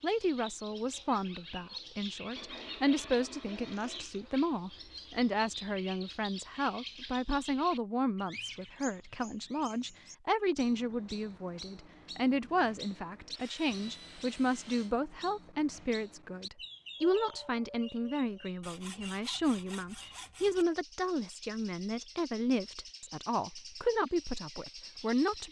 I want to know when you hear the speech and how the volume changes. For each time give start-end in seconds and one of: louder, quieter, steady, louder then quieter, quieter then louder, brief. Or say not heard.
0.0-25.4 steady.